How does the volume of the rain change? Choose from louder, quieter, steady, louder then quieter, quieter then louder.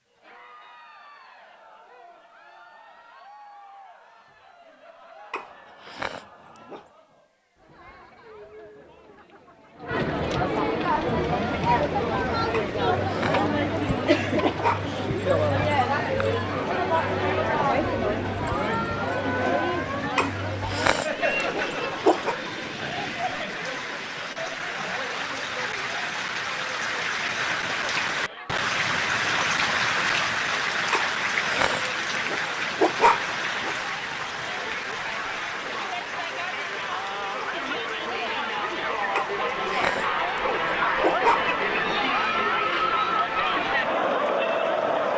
louder then quieter.